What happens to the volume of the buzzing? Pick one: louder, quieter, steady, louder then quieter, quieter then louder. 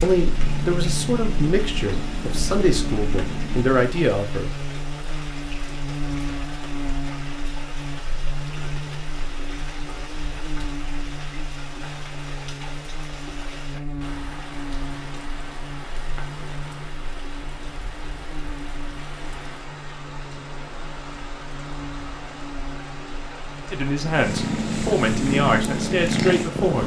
quieter.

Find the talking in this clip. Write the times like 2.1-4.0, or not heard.
0.0-4.6, 23.7-26.8.